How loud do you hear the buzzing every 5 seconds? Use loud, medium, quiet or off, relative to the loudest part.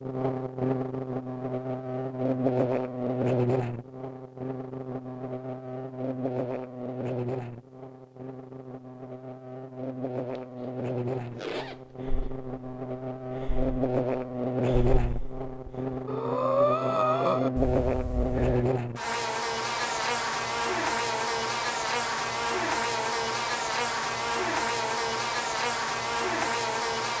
loud, medium, loud, loud, loud, loud.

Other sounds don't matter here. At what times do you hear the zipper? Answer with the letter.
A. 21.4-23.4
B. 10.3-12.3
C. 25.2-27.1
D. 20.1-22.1
B.